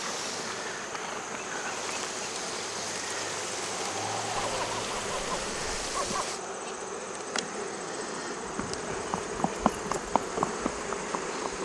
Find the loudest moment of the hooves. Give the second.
10 s.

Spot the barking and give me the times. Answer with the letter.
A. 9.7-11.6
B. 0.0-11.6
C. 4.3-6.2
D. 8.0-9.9
C.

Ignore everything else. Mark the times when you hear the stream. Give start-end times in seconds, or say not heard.
0.0-6.4.